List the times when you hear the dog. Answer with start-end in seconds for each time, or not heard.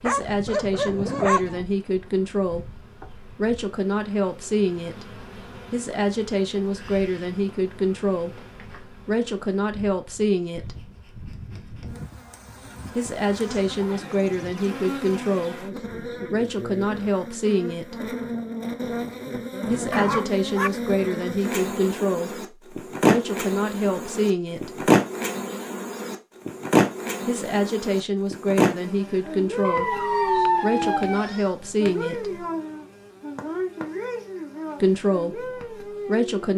0.1-1.6, 19.9-20.7, 29.6-31.5.